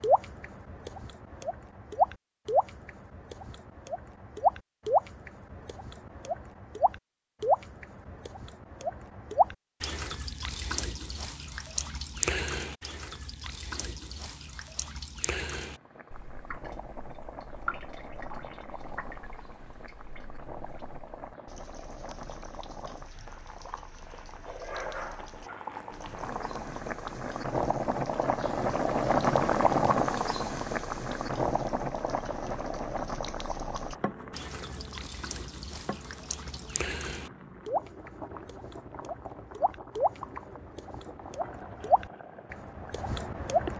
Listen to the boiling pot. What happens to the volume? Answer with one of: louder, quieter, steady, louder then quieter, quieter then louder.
louder then quieter.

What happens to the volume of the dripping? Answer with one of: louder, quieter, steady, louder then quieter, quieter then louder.
quieter then louder.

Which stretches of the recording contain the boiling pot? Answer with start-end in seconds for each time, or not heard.
15.6-43.7.